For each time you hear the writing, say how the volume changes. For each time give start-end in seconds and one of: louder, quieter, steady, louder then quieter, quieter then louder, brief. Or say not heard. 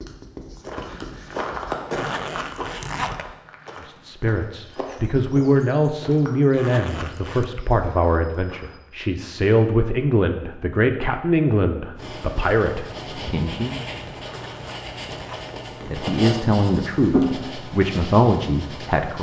0.0-1.8 brief
11.9-19.1 louder then quieter.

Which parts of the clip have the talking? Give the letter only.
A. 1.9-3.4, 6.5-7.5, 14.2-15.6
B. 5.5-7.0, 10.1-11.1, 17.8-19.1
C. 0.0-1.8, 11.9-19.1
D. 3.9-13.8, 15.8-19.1
D.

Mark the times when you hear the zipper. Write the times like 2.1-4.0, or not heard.
1.9-3.4, 6.5-7.5, 14.2-15.6.